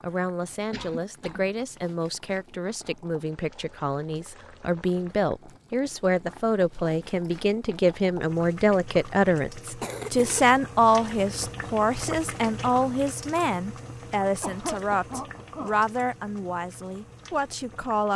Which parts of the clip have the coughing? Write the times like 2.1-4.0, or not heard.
0.7-1.5, 9.8-10.4, 14.4-15.8.